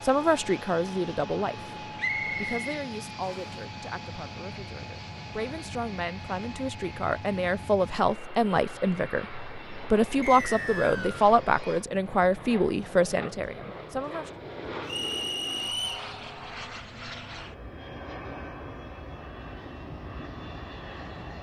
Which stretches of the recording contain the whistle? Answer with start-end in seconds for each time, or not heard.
1.9-3.4, 10.2-11.2, 14.8-16.1.